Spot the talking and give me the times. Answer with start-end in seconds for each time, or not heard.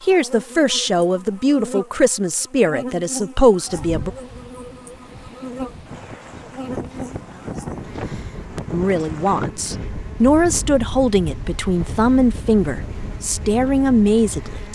0.0-4.1, 8.7-14.7.